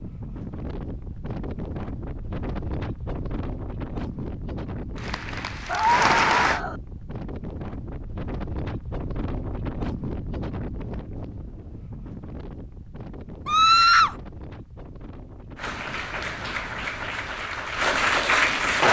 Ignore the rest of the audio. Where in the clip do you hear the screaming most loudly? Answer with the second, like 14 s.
14 s.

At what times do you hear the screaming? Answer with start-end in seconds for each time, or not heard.
5.7-6.8, 13.4-14.2.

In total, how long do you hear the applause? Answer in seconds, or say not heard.
5 s.